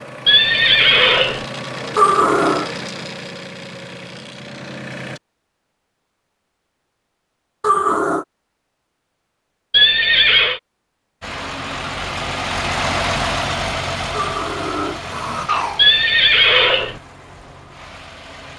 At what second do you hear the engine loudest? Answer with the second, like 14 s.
13 s.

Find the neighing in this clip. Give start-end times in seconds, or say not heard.
0.2-1.4, 9.7-10.6, 15.8-16.9.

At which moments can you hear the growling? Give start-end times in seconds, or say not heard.
1.9-2.6, 7.6-8.2, 14.1-15.8.